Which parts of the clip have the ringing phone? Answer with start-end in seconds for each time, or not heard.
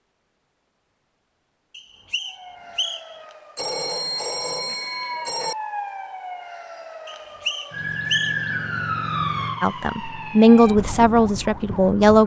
3.5-5.5.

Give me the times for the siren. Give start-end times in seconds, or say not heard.
2.2-12.2.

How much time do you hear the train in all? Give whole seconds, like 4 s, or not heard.
not heard.